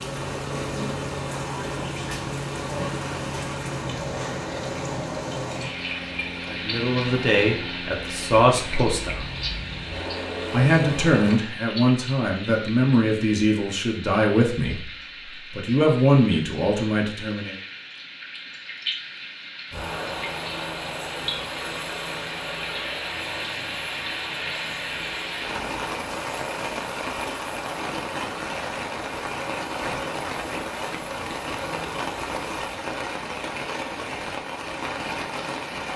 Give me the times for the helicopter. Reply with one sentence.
You can hear the helicopter from 0.0 to 11.4 s and from 19.7 to 32.8 s.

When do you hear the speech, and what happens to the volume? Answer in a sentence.
You can hear the speech briefly from 6.5 to 9.2 s; from 10.5 to 14.8 s, at a steady volume; and briefly from 15.5 to 17.6 s.